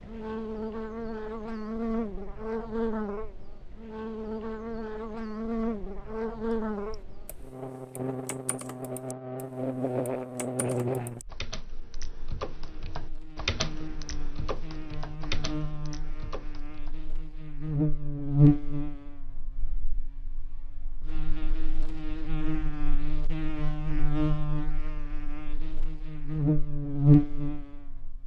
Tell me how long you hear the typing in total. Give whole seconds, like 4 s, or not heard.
10 s.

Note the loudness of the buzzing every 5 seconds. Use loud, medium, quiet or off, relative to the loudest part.
medium, medium, medium, loud, medium, loud.